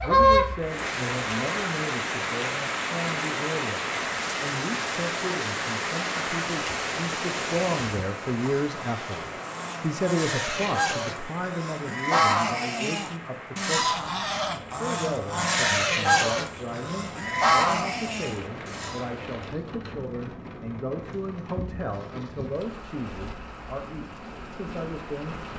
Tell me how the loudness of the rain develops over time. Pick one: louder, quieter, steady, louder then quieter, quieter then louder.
quieter.